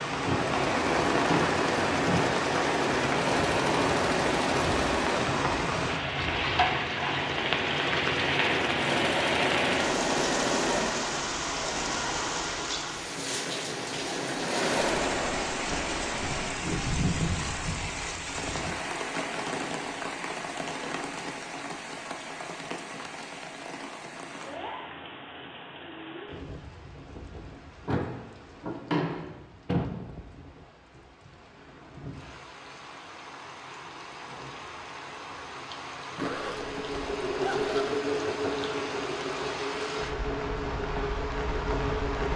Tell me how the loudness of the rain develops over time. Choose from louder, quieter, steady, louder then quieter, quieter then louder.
quieter then louder.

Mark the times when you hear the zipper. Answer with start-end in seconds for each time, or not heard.
36.1-37.9.